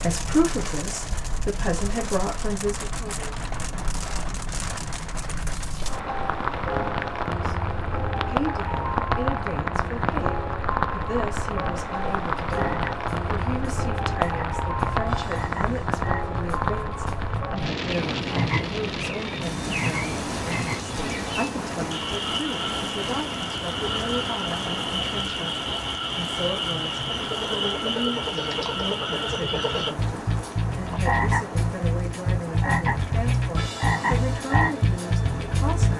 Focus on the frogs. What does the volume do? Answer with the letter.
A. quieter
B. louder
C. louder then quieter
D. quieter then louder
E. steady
B.